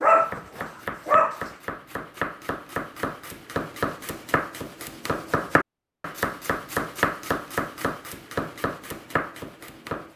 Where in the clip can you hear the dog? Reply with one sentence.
You can hear the dog from 0.0 to 1.4 s.